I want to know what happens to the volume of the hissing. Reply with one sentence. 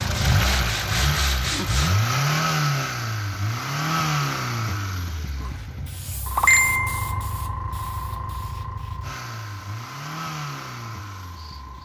The volume of the hissing goes down.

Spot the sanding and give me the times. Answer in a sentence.
The sanding can be heard from 0.0 to 1.9 s.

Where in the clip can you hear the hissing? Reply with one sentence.
You can hear the hissing from 5.4 to 11.8 s.